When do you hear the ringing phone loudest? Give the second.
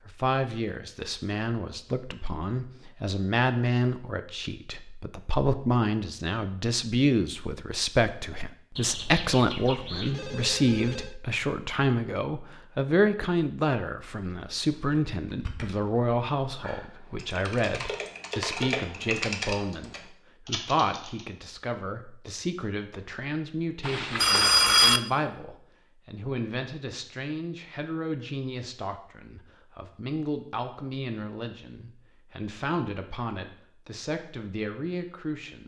25 s.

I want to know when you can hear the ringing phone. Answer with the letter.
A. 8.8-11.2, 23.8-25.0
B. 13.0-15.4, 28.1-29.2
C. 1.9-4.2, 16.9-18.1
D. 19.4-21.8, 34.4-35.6
A.